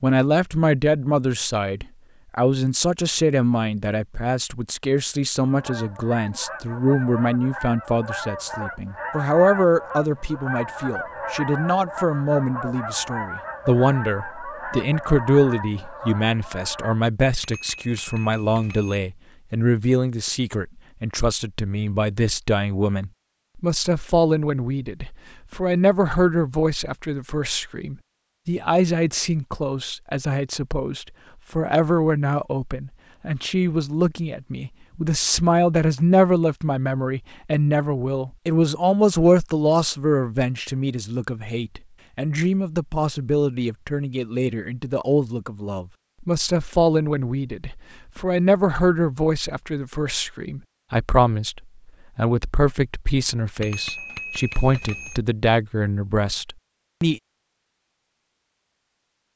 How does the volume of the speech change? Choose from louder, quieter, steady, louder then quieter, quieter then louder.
steady.